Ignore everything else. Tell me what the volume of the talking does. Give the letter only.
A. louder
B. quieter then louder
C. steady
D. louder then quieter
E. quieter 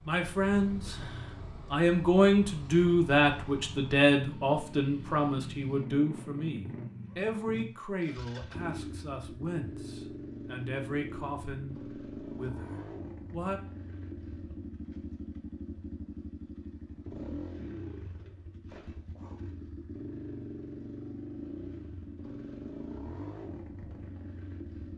E.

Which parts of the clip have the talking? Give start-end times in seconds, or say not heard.
0.1-13.6.